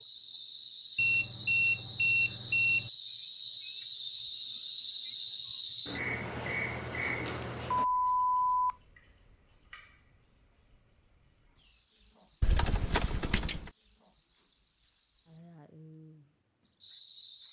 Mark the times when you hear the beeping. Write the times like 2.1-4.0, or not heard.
0.9-2.9, 7.3-8.8, 12.4-13.6.